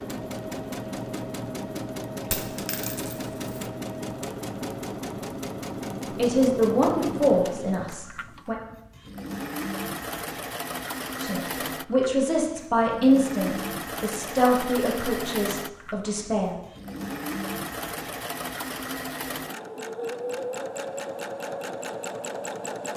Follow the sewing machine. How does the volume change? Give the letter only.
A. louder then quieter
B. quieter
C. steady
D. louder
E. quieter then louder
C.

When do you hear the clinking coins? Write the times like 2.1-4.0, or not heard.
2.3-3.7.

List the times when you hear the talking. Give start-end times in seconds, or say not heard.
6.2-8.6, 11.2-16.6.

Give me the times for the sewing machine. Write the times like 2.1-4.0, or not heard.
0.0-22.9.